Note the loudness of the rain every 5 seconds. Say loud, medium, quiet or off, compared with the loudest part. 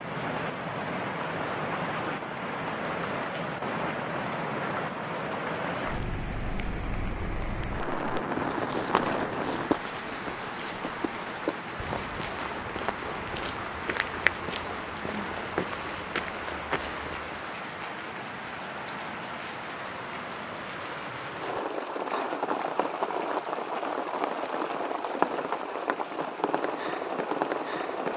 loud, loud, medium, medium, loud, loud.